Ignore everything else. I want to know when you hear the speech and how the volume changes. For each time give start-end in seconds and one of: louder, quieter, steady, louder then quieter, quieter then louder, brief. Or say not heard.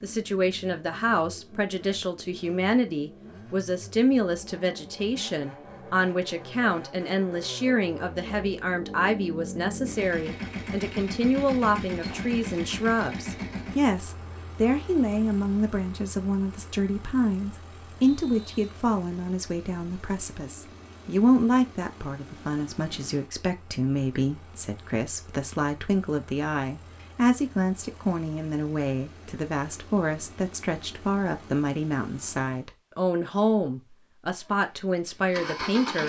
0.0-36.0 steady.